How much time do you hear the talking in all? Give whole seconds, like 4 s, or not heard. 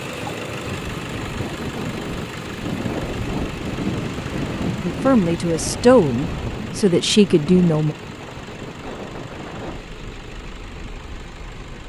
3 s.